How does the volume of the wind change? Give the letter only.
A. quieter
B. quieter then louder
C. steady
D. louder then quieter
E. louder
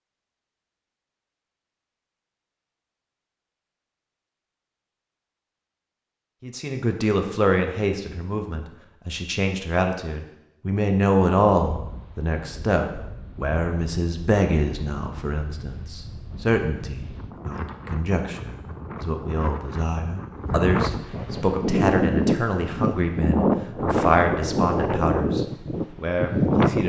E.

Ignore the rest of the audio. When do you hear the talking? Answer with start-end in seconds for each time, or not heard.
6.4-26.8.